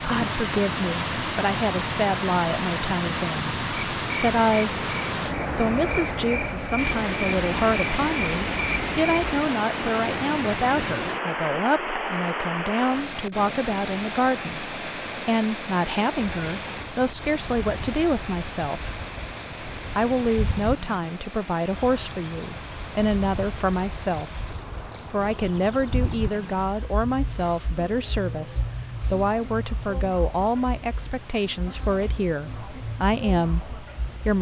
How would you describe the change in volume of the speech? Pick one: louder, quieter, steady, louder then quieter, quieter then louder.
steady.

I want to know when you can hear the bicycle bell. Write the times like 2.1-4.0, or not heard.
not heard.